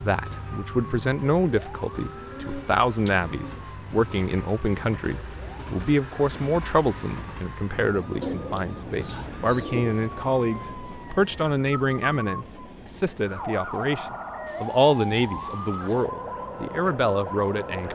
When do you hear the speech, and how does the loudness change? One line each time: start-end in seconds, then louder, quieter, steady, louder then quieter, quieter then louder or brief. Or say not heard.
0.0-17.8 steady.